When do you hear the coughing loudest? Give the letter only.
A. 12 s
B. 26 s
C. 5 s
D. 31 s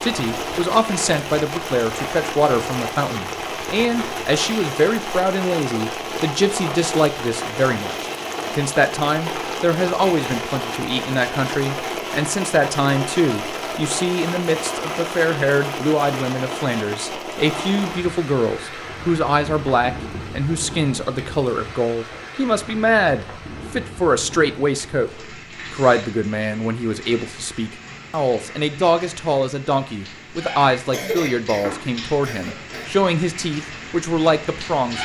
D.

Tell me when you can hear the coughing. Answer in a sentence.
You can hear the coughing from 30.9 to 32.9 s.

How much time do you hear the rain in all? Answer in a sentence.
The rain can be heard for 35 seconds in total.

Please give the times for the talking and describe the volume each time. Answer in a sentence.
The talking can be heard from 0.0 to 35.0 s, at a steady volume.